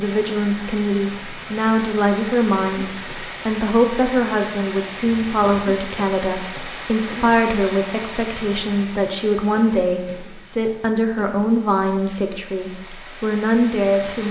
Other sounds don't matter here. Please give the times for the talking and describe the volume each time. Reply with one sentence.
You can hear the talking from 0.0 to 14.2 s, at a steady volume.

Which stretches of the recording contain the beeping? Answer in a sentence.
You can't hear the beeping here.